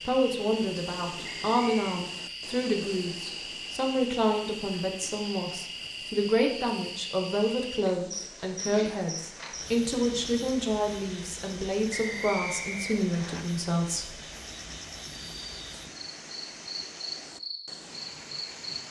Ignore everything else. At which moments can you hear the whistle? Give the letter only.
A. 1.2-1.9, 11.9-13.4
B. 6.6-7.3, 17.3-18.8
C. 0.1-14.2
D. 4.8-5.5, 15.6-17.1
A.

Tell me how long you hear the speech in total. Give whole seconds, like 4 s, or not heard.
14 s.